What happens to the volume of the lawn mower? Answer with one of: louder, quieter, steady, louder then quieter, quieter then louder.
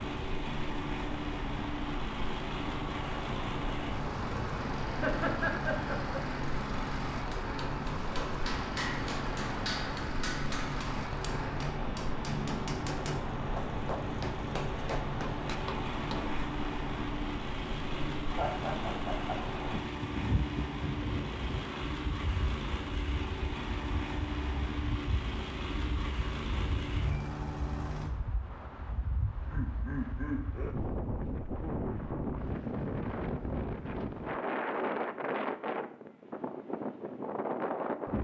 steady.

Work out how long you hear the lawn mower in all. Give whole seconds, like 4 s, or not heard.
28 s.